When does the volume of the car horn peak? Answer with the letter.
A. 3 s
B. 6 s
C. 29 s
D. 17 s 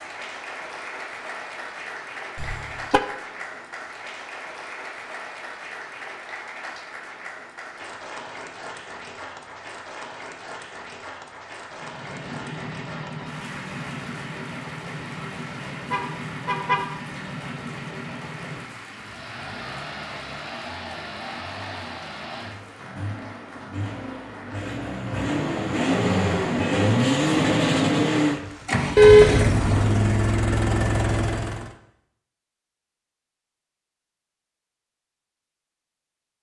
C.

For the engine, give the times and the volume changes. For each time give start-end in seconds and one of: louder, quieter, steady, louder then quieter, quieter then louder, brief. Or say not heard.
11.7-31.8 louder.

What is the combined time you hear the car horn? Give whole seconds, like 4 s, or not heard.
2 s.